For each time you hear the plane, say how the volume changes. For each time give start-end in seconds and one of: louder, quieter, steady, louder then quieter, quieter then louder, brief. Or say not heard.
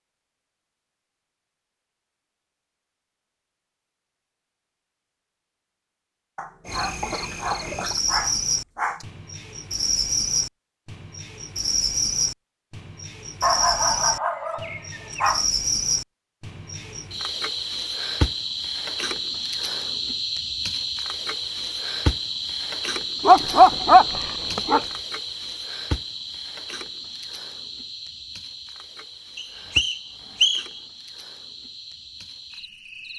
not heard.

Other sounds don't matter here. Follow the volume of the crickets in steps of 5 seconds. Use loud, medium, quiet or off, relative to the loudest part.
off, loud, loud, loud, loud, medium, quiet.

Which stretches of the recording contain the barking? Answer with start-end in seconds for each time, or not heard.
6.3-9.1, 13.4-15.4, 23.2-24.9.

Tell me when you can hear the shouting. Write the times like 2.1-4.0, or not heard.
not heard.